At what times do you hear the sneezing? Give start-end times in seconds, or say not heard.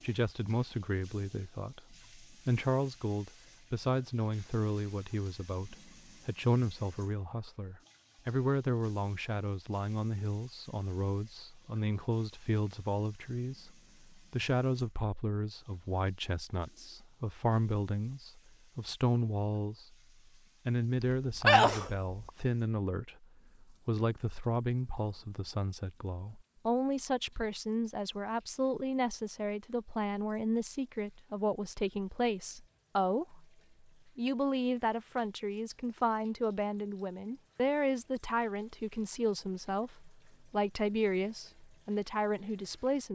21.0-22.3.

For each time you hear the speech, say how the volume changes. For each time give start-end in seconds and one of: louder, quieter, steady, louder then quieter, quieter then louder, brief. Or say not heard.
0.0-19.9 steady
20.6-33.5 steady
34.1-43.1 steady.